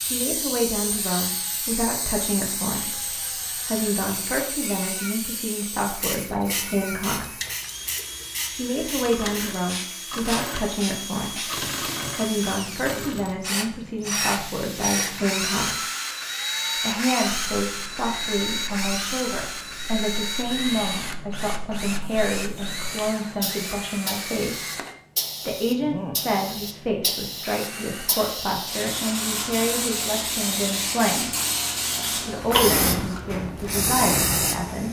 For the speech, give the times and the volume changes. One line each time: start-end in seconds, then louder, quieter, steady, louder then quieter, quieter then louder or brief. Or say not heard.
0.0-7.3 steady
8.5-15.8 steady
16.8-24.7 steady
25.4-31.3 steady
31.9-34.8 brief.